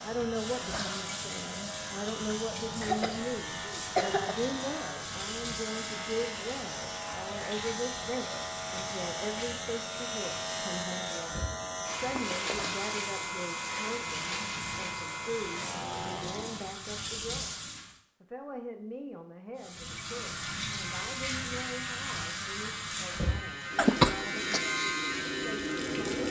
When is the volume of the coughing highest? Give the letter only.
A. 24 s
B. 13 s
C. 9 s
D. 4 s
A.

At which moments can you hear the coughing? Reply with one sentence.
The coughing can be heard from 2.8 to 4.3 s, from 12.1 to 12.7 s and from 23.8 to 24.6 s.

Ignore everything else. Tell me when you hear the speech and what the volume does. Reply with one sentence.
You can hear the speech from 0.0 to 26.2 s, getting quieter.